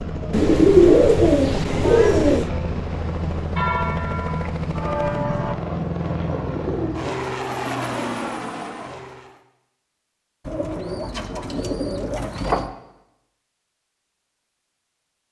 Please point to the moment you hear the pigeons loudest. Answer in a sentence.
The volume of the pigeons peaks at 1 second.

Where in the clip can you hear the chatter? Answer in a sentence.
The chatter can't be heard in this clip.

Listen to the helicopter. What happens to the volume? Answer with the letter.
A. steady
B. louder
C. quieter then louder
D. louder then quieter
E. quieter
A.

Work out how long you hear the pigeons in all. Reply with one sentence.
You can hear the pigeons for 6 seconds altogether.